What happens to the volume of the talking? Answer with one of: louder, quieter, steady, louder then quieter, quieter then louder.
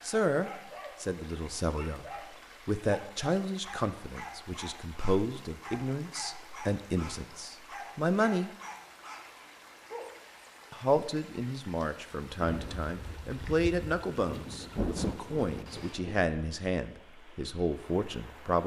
steady.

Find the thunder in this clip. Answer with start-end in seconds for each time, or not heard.
12.4-16.2.